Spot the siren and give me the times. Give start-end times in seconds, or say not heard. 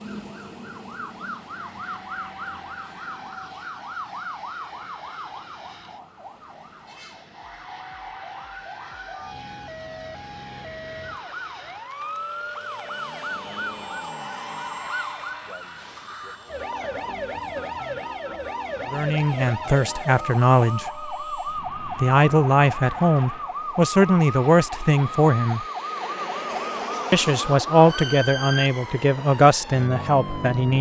0.0-30.7.